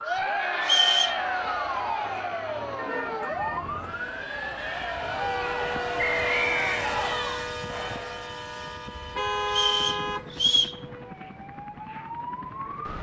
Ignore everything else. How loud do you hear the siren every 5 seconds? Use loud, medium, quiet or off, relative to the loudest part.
loud, loud, medium.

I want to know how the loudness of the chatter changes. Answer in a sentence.
The loudness of the chatter goes down, then up.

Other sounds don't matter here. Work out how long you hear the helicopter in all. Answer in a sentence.
You can hear the helicopter for 10 seconds altogether.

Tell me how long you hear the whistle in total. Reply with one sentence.
The whistle can be heard for 3 seconds in total.